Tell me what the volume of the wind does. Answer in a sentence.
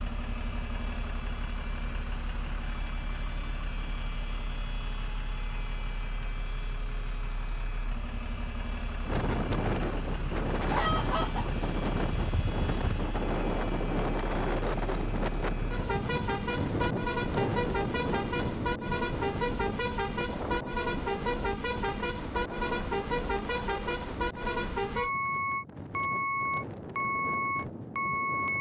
The loudness of the wind goes down.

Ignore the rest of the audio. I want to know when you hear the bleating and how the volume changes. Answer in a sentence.
You can't hear the bleating here.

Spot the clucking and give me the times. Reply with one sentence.
You can hear the clucking from 10.7 to 13.1 s.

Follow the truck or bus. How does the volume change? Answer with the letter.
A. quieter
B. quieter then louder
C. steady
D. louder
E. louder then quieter
D.